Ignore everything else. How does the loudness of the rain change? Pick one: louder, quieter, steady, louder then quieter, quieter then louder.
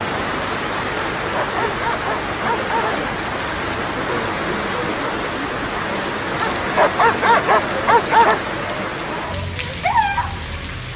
steady.